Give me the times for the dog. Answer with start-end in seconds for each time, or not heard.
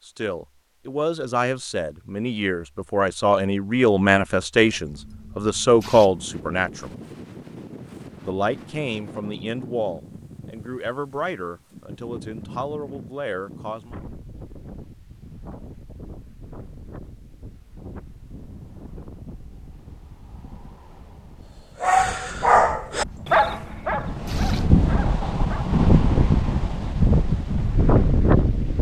21.8-25.8.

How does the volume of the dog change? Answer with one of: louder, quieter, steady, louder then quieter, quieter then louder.
quieter.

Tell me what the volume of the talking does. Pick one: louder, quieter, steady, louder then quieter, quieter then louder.
louder then quieter.